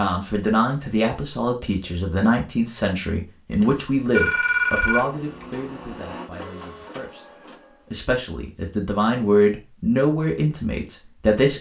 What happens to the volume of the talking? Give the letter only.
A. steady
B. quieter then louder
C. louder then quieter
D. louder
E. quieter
B.